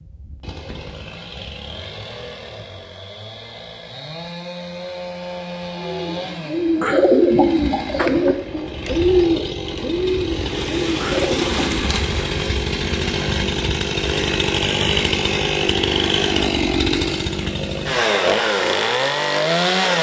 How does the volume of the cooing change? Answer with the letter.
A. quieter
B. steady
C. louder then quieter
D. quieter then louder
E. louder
A.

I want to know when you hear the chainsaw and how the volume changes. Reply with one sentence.
The chainsaw can be heard from 0.0 to 19.9 s, getting louder.